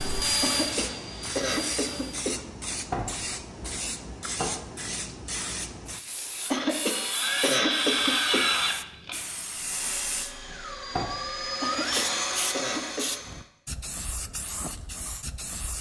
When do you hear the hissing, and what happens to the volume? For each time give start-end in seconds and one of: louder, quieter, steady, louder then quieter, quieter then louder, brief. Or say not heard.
0.0-15.7 steady.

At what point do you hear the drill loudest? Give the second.
8 s.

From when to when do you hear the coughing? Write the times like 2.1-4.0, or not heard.
0.4-2.5, 6.5-8.5, 11.6-13.1.